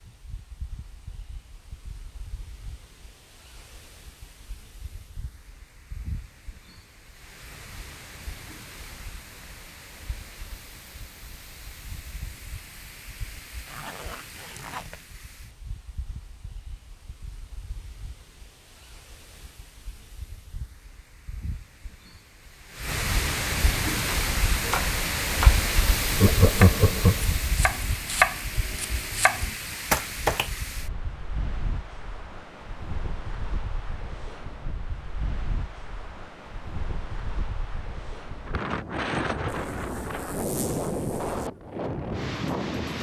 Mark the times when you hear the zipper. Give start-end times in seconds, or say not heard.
13.7-15.1, 39.5-41.5.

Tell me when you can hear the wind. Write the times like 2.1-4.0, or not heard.
0.0-42.9.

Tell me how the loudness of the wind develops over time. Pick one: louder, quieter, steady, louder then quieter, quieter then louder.
louder.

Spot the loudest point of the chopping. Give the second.
28 s.